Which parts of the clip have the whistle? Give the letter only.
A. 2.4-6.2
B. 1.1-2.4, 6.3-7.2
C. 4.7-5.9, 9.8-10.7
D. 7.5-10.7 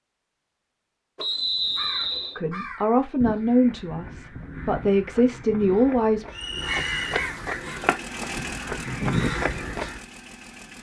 B.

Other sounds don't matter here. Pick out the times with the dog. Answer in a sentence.
You can't hear the dog here.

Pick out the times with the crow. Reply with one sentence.
The crow can be heard from 1.3 to 10.0 s.